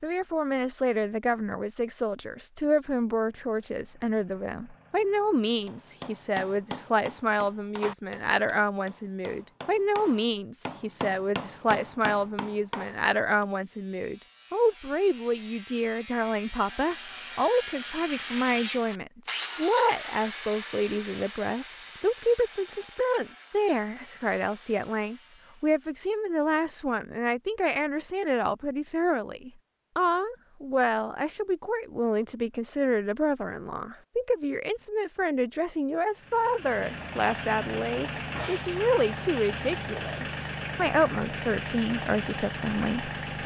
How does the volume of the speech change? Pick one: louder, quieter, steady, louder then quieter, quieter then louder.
steady.